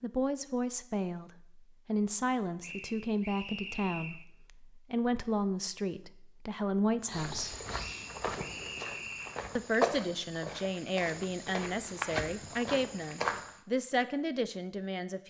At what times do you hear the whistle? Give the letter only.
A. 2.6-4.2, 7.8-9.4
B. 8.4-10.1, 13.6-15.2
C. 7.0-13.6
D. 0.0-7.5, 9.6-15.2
A.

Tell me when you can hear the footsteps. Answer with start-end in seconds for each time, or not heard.
7.0-13.6.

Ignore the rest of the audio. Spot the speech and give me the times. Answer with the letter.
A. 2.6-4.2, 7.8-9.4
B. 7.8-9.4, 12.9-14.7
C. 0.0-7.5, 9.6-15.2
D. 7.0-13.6
C.